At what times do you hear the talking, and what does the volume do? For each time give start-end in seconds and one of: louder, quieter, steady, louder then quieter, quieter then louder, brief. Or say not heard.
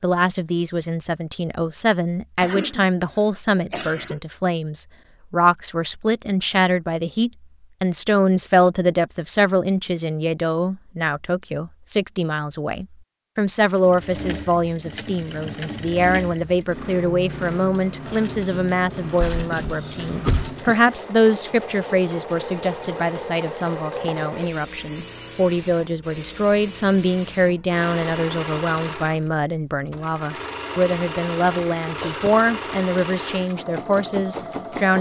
0.0-34.9 steady.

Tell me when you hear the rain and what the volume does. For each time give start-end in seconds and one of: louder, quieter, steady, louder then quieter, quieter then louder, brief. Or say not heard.
not heard.